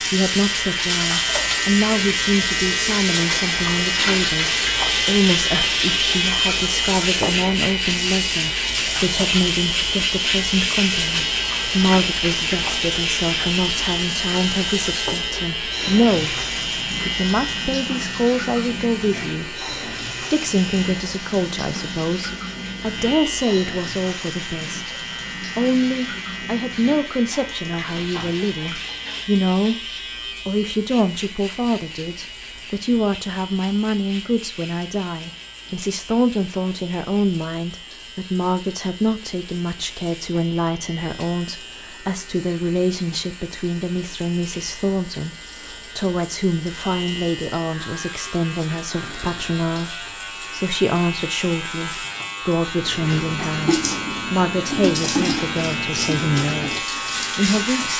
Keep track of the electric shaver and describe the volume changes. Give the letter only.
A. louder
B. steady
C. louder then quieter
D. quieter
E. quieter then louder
E.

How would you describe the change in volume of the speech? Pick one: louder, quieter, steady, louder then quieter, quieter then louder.
steady.